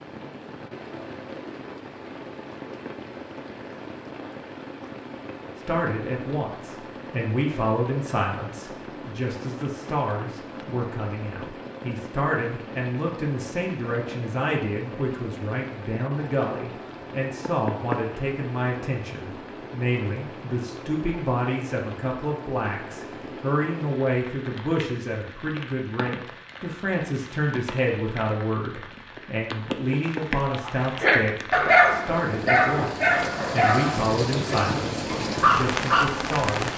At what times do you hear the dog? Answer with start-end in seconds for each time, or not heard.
30.6-36.5.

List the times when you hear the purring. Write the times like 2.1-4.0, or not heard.
not heard.